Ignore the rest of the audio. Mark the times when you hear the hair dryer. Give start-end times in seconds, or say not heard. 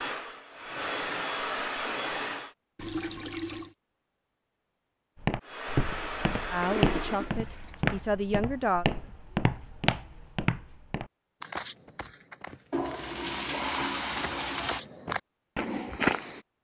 0.0-2.5, 5.4-7.3.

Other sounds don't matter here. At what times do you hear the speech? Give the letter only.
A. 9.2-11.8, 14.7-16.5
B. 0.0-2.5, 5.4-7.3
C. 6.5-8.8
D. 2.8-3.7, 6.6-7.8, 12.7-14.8
C.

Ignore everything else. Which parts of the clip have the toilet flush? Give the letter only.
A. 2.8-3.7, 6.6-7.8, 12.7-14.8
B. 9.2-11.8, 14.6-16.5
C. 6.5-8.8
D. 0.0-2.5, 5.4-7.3
A.